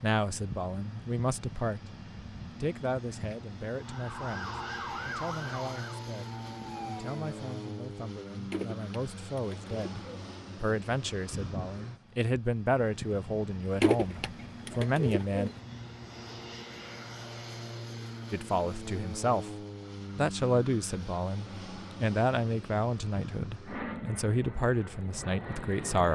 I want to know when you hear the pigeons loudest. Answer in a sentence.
The volume of the pigeons peaks at 14 seconds.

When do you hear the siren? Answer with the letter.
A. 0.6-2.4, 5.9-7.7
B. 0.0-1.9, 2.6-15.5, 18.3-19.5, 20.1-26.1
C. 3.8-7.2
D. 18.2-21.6
C.